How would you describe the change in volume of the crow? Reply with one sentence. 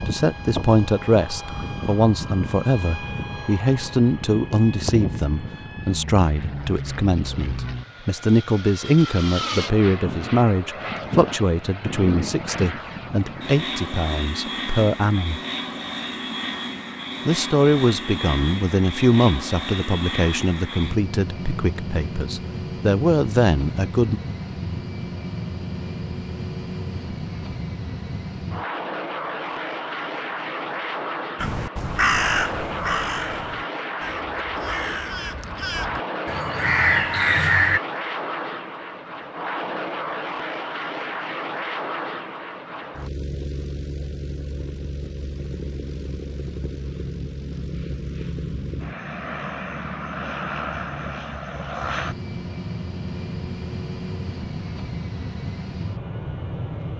The loudness of the crow goes down, then up.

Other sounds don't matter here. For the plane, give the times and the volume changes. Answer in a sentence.
The plane can be heard from 0.0 to 56.9 s, at a steady volume.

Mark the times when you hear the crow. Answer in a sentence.
You can hear the crow from 31.4 to 37.8 s.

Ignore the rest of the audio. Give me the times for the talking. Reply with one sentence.
You can hear the talking from 0.1 to 15.4 s and from 17.2 to 24.2 s.